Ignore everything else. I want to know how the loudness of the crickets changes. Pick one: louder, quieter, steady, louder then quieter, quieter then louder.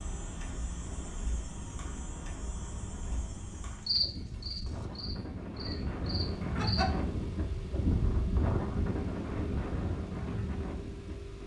louder then quieter.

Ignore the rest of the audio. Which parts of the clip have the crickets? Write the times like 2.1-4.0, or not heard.
0.0-6.9.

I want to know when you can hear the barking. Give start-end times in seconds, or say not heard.
not heard.